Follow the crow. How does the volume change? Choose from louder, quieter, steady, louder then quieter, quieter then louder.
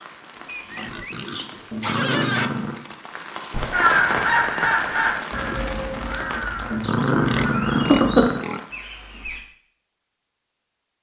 quieter then louder.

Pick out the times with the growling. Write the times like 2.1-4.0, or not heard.
1.7-2.8, 6.7-8.4.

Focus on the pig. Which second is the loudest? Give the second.
2 s.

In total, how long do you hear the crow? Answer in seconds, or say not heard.
6 s.